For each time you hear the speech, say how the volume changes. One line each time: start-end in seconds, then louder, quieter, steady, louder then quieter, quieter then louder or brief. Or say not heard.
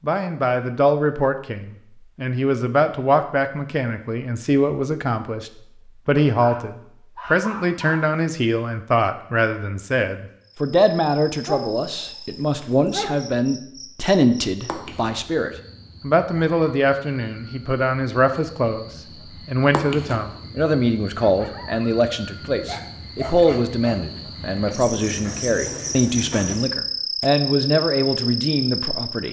0.0-29.2 steady.